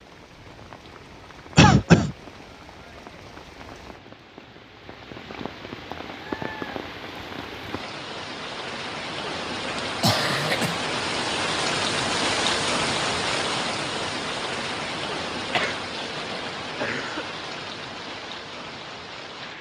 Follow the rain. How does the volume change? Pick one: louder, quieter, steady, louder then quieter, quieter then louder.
louder then quieter.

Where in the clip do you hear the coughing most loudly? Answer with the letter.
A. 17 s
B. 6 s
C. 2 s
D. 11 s
C.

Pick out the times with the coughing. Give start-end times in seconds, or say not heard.
1.6-2.1, 10.0-10.8, 15.5-17.2.